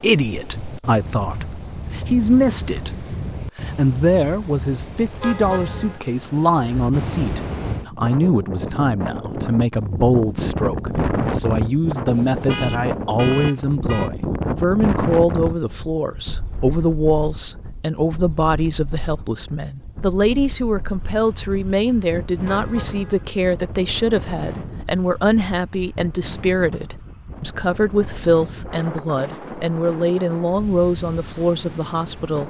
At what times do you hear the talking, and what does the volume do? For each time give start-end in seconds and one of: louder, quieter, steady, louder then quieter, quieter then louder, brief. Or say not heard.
0.0-32.4 steady.